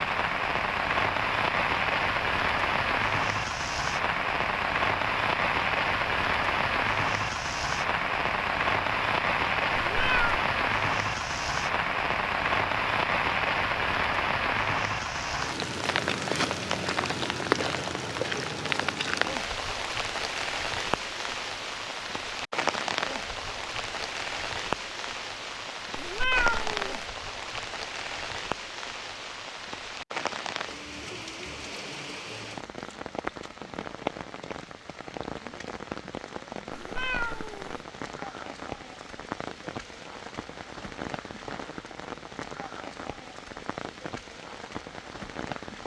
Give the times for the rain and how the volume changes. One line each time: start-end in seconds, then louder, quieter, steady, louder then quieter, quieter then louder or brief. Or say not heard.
0.0-45.8 quieter.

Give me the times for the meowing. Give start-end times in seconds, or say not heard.
9.9-10.3, 25.9-27.1, 36.7-37.8.